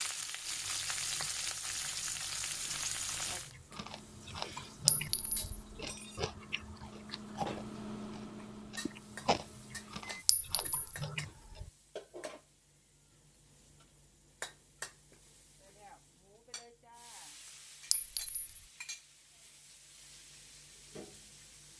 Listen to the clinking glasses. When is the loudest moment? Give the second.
5 s.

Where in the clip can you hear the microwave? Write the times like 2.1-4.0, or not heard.
3.7-10.2.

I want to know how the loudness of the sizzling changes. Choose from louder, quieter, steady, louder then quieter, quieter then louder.
quieter.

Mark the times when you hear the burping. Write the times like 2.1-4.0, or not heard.
not heard.